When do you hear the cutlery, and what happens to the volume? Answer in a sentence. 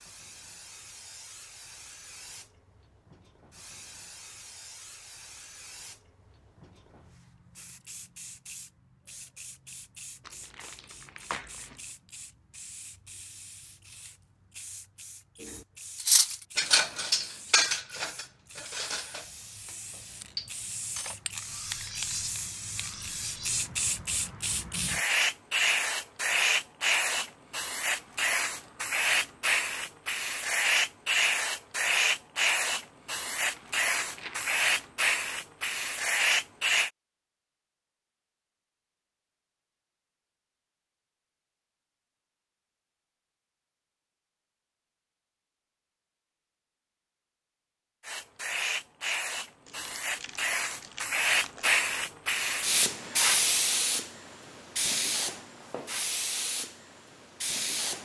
The cutlery can be heard from 16.0 to 23.6 s, getting quieter.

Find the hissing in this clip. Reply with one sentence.
The hissing can be heard from 0.0 to 36.9 s and from 48.0 to 58.0 s.